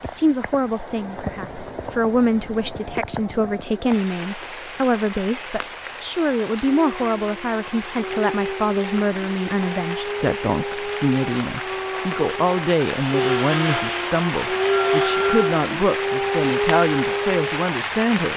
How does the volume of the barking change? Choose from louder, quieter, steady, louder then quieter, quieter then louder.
louder.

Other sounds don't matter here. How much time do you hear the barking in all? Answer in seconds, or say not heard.
11 s.